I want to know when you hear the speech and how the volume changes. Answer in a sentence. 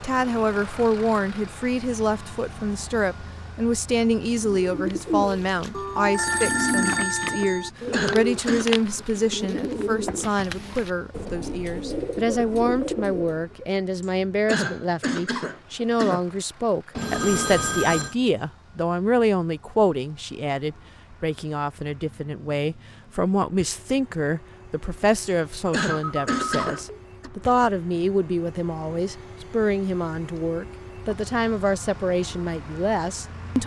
The speech can be heard from 0.0 to 33.6 s, at a steady volume.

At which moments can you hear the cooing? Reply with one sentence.
You can hear the cooing from 4.2 to 13.6 s.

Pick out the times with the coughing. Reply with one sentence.
The coughing can be heard from 7.5 to 8.8 s, from 14.0 to 16.2 s and from 25.2 to 27.3 s.